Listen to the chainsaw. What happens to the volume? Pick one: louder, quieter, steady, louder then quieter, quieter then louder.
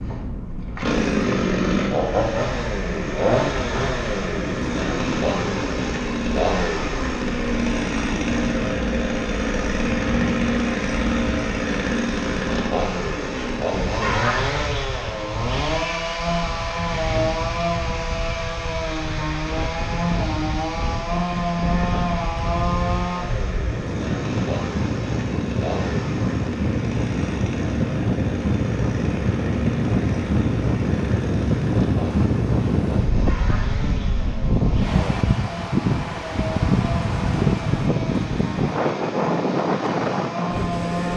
quieter.